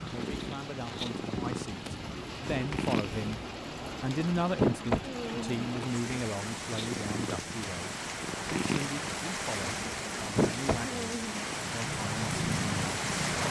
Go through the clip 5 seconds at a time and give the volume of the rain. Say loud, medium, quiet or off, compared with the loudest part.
medium, loud, loud.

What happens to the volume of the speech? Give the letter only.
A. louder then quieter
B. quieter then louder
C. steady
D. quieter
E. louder
A.